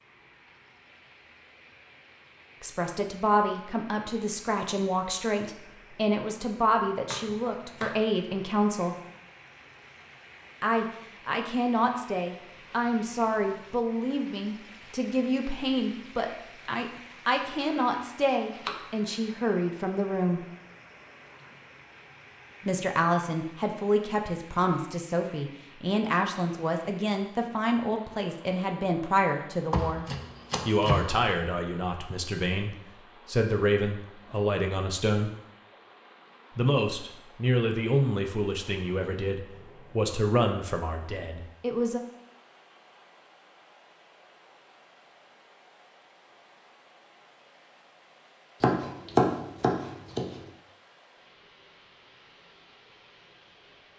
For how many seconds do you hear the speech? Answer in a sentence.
The speech can be heard for 34 seconds in total.